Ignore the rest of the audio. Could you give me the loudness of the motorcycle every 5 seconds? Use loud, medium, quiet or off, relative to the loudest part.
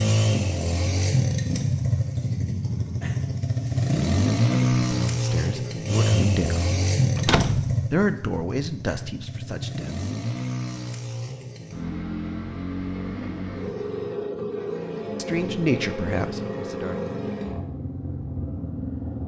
loud, loud, medium, medium.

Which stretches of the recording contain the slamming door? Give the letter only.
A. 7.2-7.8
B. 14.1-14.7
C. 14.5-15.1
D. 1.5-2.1
A.